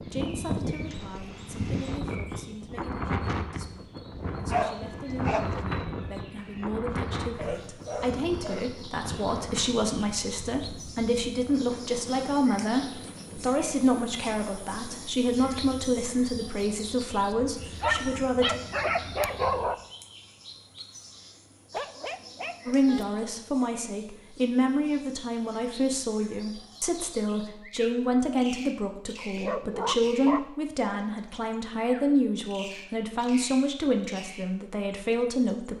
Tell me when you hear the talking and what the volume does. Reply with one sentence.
You can hear the talking from 0.0 to 18.6 s, getting louder; and from 22.6 to 35.7 s, at a steady volume.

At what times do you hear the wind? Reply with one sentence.
The wind can be heard from 0.0 to 19.8 s.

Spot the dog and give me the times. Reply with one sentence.
You can hear the dog from 4.5 to 5.5 s, from 7.3 to 8.8 s, from 17.8 to 19.8 s, from 21.7 to 23.1 s and from 29.4 to 30.5 s.